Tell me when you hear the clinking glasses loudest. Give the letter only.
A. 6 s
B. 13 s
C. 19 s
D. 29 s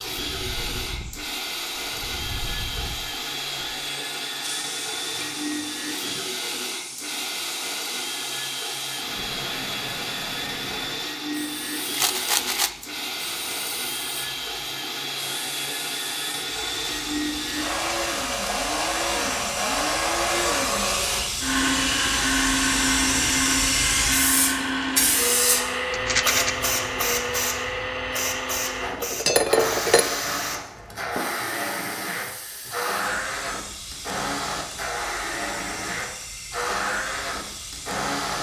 D.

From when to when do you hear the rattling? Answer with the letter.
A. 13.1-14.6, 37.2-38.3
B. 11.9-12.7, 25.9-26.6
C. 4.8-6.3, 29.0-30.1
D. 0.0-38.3
B.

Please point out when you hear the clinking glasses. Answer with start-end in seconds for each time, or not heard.
4.8-6.3, 29.0-30.1.